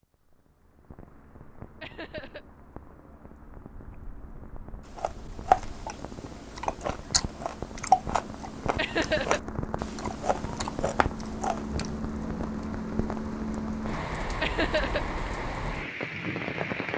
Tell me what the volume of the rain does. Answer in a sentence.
The volume of the rain goes up.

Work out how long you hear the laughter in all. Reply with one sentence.
The laughter can be heard for 2 seconds in total.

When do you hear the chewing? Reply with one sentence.
You can hear the chewing from 5.0 to 11.9 s.